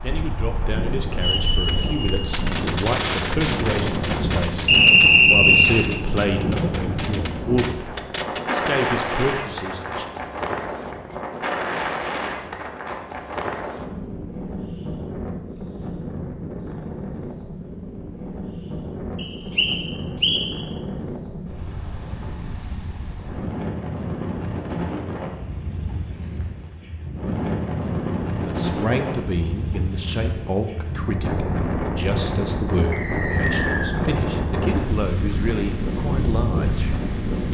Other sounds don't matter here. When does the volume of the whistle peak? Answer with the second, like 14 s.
5 s.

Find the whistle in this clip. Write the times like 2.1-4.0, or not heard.
4.7-5.8, 19.1-20.4, 32.9-34.0.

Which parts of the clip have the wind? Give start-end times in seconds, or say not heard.
0.0-37.4.